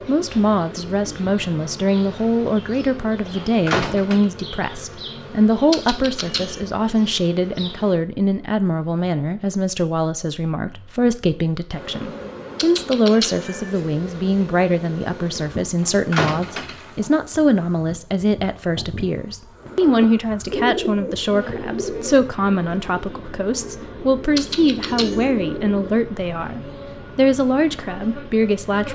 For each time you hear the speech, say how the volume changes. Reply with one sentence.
You can hear the speech from 0.1 to 28.9 s, at a steady volume.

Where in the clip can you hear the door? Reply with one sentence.
You can hear the door from 3.4 to 4.2 s and from 15.8 to 16.9 s.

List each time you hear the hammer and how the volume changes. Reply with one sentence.
You can't hear the hammer here.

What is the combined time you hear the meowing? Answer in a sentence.
You can hear the meowing for 3 seconds altogether.